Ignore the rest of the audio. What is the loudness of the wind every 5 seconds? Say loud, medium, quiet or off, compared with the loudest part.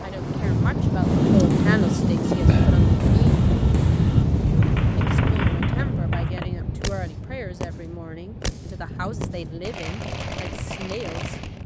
loud, medium, quiet.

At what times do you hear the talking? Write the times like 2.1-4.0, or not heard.
0.0-3.4, 5.0-11.4.